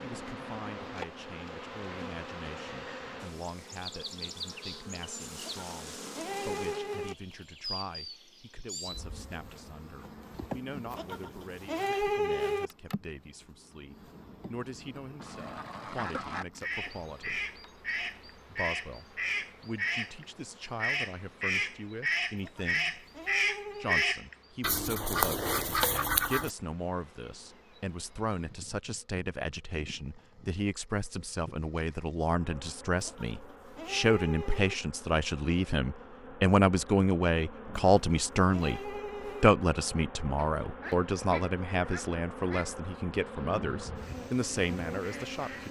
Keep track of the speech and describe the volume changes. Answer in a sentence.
The volume of the speech goes up.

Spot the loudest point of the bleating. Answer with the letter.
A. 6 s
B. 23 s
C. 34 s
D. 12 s
D.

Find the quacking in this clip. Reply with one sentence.
The quacking can be heard from 15.2 to 26.5 s and from 40.4 to 45.6 s.